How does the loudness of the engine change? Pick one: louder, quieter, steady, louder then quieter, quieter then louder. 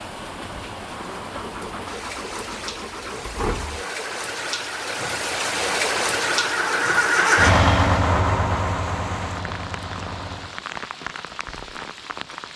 louder then quieter.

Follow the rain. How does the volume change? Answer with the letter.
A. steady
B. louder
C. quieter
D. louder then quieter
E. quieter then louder
D.